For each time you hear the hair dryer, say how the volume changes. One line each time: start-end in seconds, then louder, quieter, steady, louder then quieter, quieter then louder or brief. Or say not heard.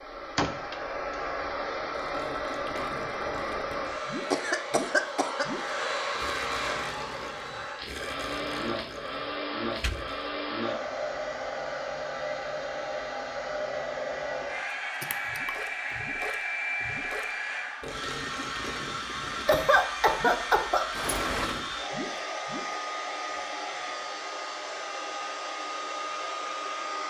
0.0-27.0 steady.